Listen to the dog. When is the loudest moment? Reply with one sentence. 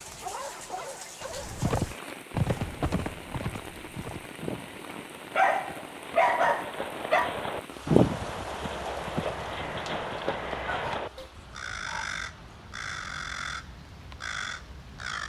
The volume of the dog peaks at 6 seconds.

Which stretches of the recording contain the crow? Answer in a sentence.
You can hear the crow from 9.2 to 15.2 s.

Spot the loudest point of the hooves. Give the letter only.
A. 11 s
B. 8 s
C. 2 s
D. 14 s
B.